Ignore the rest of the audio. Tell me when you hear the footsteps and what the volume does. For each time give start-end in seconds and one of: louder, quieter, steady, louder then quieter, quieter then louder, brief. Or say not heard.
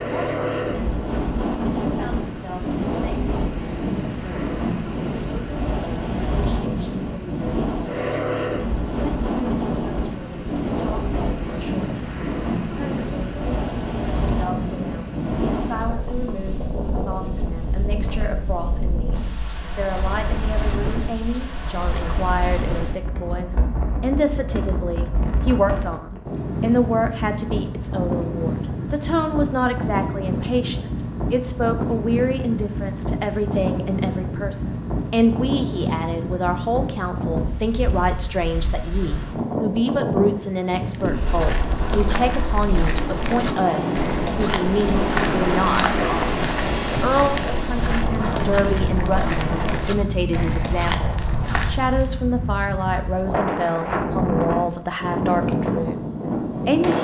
40.9-52.1 steady.